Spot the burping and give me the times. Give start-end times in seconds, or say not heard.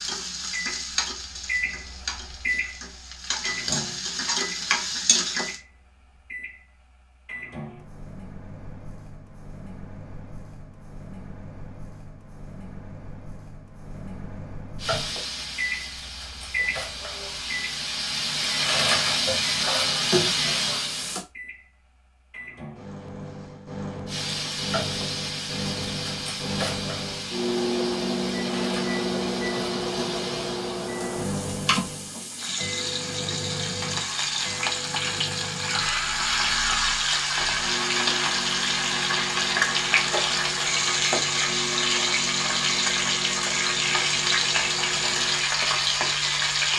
not heard.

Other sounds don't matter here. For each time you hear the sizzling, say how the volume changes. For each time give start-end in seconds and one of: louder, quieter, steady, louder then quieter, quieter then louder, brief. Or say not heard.
0.0-5.6 quieter then louder
14.8-21.2 louder
24.1-46.7 louder.